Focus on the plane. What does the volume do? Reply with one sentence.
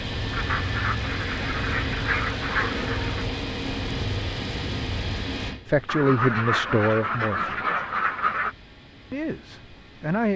The volume of the plane goes down.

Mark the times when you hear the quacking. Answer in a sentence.
The quacking can be heard from 0.3 to 3.2 s and from 5.8 to 8.6 s.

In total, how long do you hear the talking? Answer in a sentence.
The talking can be heard for 3 seconds in total.